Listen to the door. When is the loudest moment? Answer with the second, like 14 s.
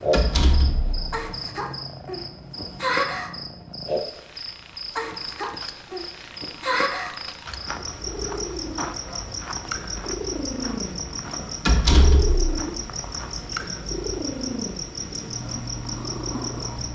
12 s.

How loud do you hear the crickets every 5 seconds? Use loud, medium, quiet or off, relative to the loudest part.
loud, loud, medium, medium.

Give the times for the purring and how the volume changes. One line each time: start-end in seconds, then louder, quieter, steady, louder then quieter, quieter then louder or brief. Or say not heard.
0.0-16.8 louder.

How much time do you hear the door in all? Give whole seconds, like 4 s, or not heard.
2 s.